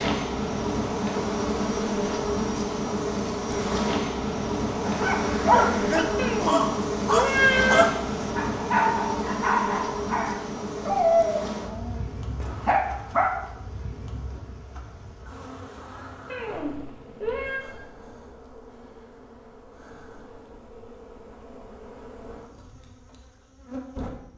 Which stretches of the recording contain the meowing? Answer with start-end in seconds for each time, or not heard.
6.2-7.8, 16.2-17.6.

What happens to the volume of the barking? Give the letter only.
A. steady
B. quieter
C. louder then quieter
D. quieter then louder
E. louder
B.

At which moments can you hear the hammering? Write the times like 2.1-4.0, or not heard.
not heard.